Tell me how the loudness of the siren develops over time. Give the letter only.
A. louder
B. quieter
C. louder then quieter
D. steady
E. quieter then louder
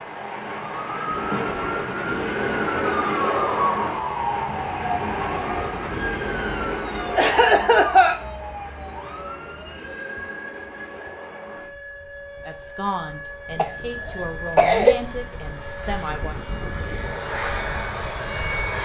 B.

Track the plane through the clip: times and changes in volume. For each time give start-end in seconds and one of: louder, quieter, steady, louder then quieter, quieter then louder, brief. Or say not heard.
0.0-18.8 quieter then louder.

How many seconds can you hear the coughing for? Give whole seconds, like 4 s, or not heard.
4 s.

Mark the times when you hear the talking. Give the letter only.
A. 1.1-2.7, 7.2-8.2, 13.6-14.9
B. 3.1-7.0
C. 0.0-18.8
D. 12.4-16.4
D.